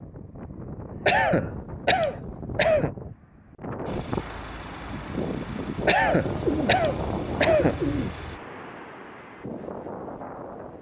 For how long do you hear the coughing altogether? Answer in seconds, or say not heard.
4 s.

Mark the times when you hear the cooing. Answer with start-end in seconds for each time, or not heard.
6.2-8.2.